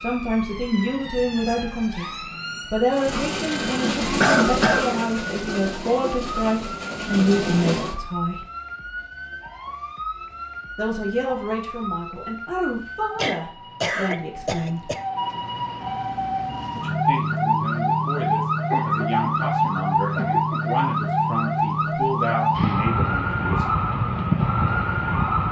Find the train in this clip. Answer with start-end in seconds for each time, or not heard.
2.9-8.0.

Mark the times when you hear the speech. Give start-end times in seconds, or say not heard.
0.0-8.4, 10.8-14.9, 16.8-23.6.